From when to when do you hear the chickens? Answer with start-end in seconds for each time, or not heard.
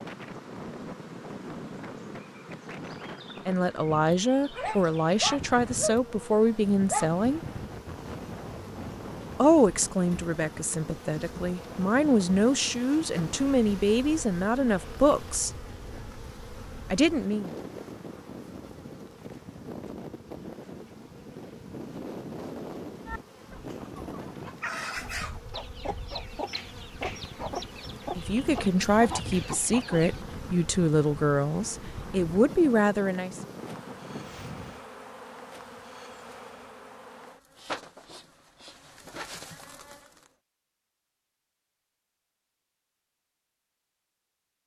23.1-30.2.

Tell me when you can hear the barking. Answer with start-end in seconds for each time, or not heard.
4.5-7.2.